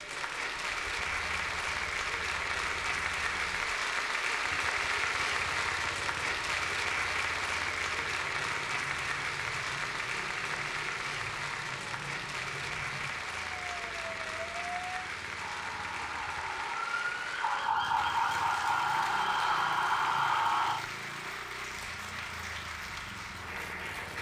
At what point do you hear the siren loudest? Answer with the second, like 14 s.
20 s.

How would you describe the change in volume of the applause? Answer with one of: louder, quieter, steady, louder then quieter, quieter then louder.
quieter.